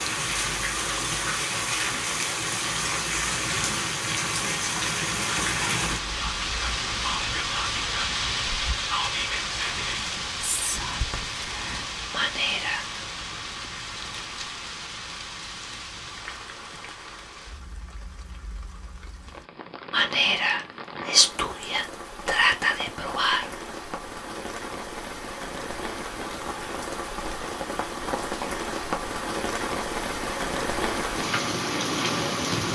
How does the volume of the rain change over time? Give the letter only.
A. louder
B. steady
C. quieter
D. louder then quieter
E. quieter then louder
E.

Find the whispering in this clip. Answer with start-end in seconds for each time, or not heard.
6.1-12.8, 19.9-23.5.